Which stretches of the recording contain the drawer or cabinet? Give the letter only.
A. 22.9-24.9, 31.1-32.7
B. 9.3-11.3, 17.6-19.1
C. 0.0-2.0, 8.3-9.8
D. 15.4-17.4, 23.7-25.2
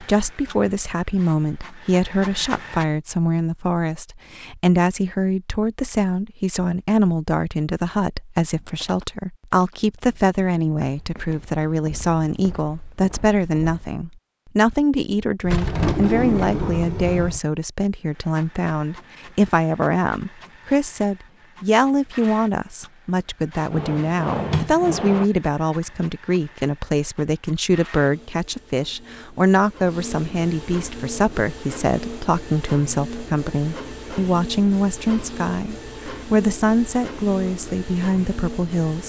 D.